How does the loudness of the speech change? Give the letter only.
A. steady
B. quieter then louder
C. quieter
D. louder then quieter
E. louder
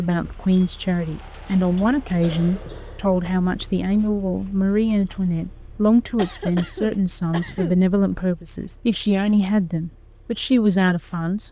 A.